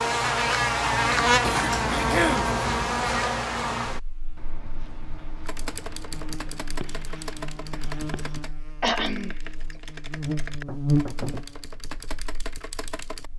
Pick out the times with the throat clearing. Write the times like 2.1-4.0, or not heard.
1.4-2.5, 8.8-9.3.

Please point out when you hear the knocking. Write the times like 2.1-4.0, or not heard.
10.7-11.4.